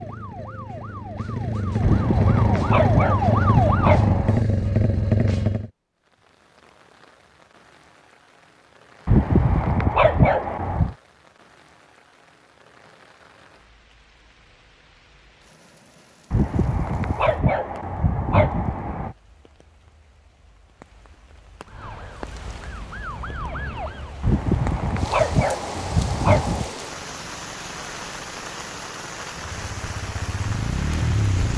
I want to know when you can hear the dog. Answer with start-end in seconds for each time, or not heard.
1.8-4.5, 9.1-10.9, 16.3-19.1, 24.2-26.8.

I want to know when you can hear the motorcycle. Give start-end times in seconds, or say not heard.
0.0-5.7, 29.5-31.5.